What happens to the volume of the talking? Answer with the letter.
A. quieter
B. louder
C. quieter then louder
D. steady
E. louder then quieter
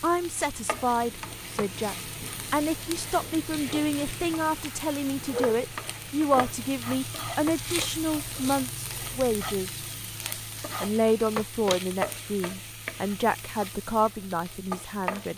D.